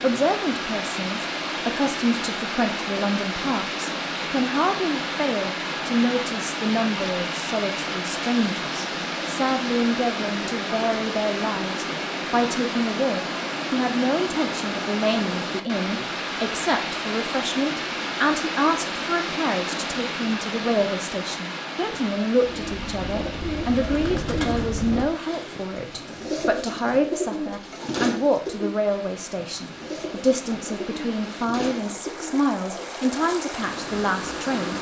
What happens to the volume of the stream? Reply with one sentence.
The volume of the stream goes down.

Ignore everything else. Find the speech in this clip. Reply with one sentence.
You can hear the speech from 0.0 to 34.7 s.